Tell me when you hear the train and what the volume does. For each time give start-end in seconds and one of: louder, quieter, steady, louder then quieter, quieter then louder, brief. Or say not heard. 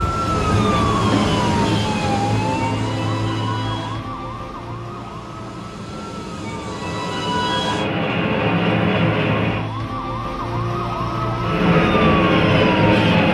0.0-9.7 quieter then louder
11.4-13.2 brief.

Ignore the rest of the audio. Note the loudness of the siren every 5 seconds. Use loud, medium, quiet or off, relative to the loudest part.
loud, medium, loud.